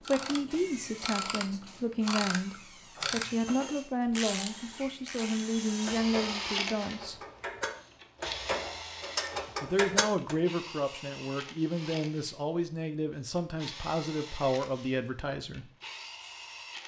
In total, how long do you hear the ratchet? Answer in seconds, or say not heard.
10 s.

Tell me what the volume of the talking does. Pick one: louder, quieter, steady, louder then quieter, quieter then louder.
steady.